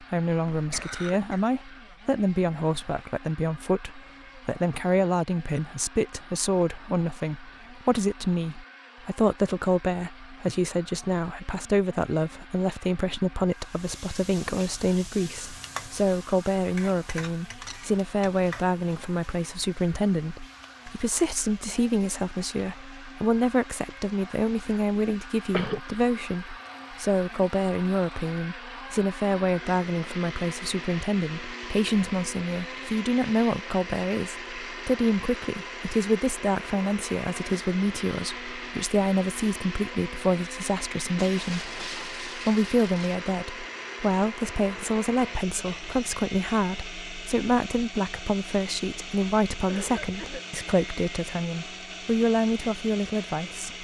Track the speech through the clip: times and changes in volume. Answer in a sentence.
The speech can be heard from 0.0 to 53.7 s, at a steady volume.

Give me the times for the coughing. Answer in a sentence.
The coughing can be heard from 0.5 to 1.4 s, from 24.9 to 25.8 s and from 49.6 to 50.5 s.